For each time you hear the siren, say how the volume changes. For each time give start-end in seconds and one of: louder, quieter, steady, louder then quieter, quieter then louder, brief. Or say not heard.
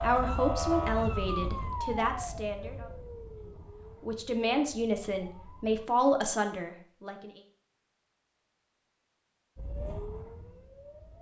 0.0-5.8 quieter
9.6-11.1 brief.